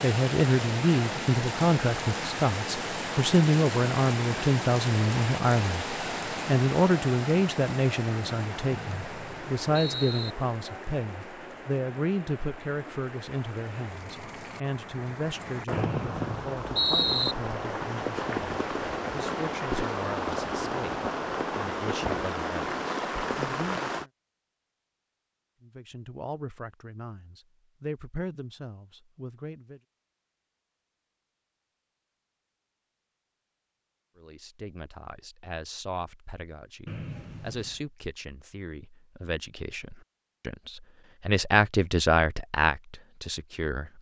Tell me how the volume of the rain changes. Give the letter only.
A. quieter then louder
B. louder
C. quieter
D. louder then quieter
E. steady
A.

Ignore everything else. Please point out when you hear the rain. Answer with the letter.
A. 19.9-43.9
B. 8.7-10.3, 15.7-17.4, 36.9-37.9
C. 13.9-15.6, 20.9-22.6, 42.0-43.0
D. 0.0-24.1
D.